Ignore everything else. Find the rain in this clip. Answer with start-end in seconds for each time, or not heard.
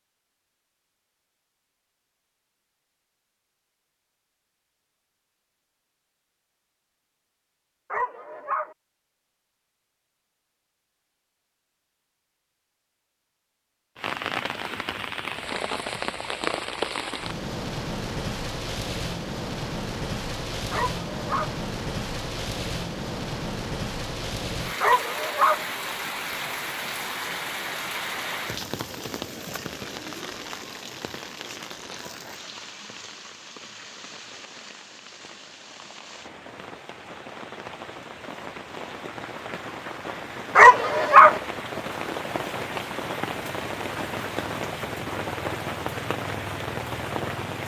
13.9-47.6.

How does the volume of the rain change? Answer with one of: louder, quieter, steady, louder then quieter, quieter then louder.
quieter then louder.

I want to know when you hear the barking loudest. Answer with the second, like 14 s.
41 s.